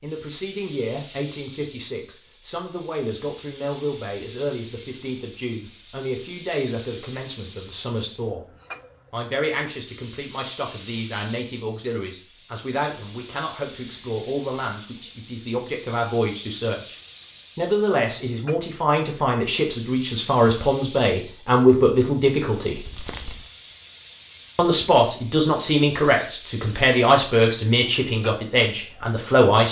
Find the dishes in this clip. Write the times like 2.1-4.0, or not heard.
not heard.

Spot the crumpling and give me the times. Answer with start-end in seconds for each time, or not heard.
22.9-23.5.